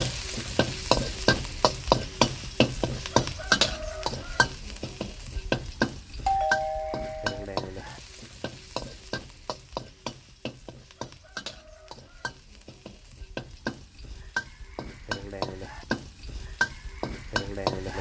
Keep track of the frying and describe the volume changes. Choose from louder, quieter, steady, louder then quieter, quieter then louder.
quieter then louder.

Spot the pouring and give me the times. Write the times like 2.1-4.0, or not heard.
not heard.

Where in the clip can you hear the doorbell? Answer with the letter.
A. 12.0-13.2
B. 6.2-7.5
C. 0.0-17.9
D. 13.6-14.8
B.